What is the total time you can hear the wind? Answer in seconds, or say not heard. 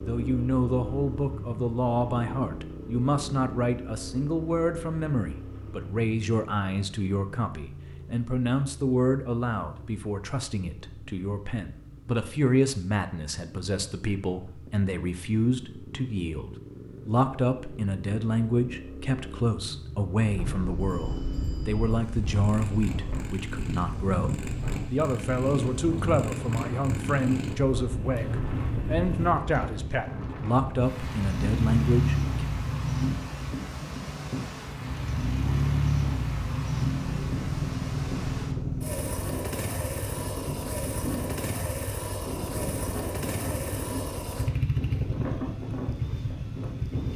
27 s.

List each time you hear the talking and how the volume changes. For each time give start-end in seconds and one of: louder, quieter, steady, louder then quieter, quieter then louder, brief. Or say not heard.
0.0-32.2 steady.